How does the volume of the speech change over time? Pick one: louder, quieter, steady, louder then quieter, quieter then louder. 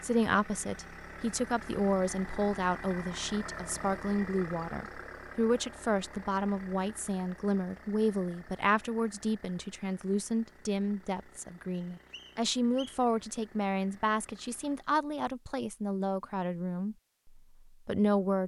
steady.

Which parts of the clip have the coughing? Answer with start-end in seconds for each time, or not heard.
not heard.